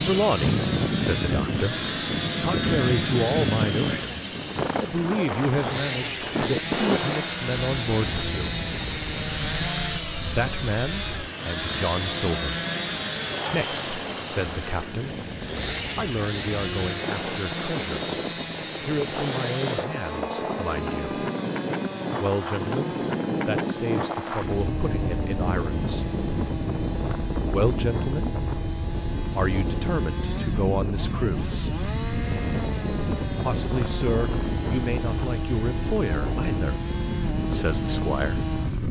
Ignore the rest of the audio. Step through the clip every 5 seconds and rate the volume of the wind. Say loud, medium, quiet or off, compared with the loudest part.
loud, loud, medium, medium, loud, loud, loud, loud.